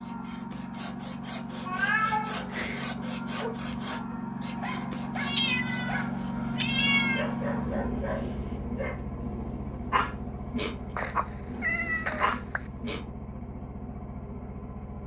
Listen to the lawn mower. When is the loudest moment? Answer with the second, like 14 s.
7 s.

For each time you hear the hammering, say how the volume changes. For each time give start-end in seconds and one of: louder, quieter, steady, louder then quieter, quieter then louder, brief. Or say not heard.
not heard.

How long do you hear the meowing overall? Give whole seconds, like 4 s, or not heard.
5 s.